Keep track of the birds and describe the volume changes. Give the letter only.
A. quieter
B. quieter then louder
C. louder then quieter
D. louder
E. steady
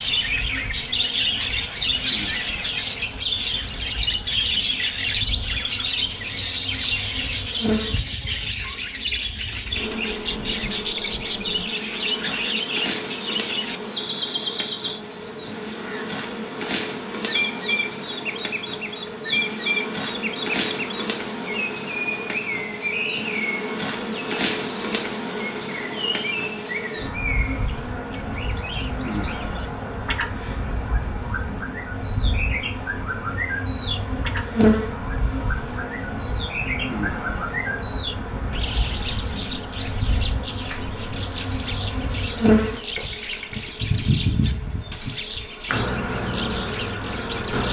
A.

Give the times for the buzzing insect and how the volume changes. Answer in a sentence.
The buzzing insect can be heard from 0.0 to 47.6 s, getting louder.